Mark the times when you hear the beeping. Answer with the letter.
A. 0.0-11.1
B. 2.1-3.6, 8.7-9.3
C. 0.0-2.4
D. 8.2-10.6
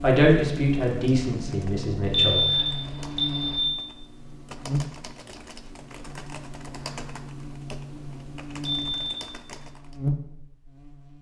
B.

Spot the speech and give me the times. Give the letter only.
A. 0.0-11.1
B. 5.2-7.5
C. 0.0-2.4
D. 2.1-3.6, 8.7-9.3
C.